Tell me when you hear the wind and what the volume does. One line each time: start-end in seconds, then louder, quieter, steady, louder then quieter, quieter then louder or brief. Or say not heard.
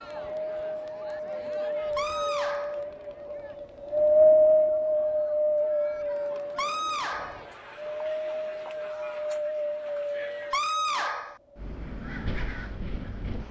0.2-13.4 louder then quieter.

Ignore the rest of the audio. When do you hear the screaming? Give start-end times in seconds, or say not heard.
1.9-2.8, 6.5-7.5, 10.5-11.4.